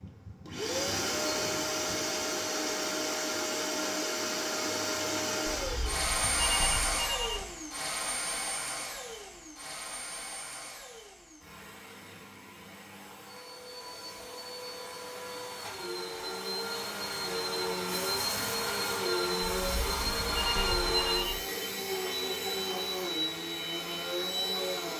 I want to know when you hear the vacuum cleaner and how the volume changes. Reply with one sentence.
The vacuum cleaner can be heard from 0.0 to 24.9 s, getting quieter then louder.